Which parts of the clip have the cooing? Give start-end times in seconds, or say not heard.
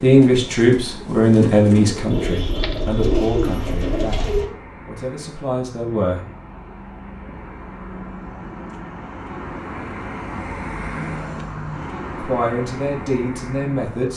0.0-4.5.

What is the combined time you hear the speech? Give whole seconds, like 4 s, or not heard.
8 s.